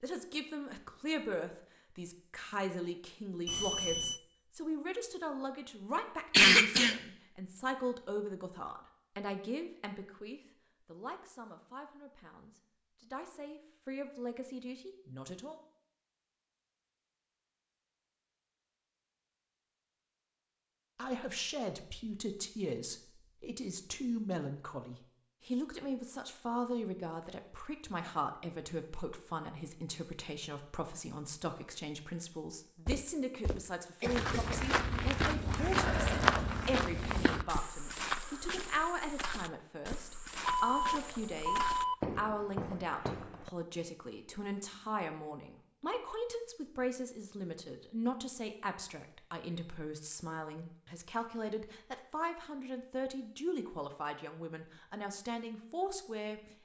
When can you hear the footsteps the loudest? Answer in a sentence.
The volume of the footsteps peaks at 36 seconds.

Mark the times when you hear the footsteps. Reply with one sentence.
You can hear the footsteps from 32.9 to 43.5 s.